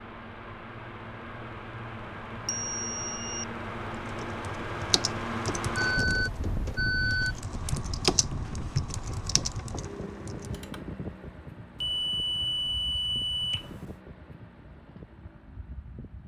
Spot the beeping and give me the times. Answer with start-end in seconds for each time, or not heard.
2.5-3.5, 5.8-7.4, 11.8-13.9.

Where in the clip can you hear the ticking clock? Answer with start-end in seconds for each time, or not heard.
not heard.